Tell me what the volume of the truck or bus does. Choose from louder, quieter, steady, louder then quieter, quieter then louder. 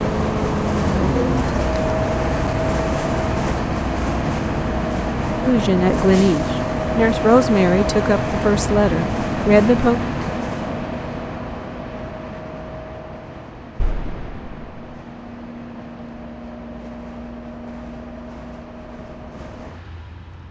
quieter.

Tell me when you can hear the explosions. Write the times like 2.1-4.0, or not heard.
13.8-14.9.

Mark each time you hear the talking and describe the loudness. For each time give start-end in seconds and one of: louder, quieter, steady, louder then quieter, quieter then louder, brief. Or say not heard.
5.4-10.0 steady.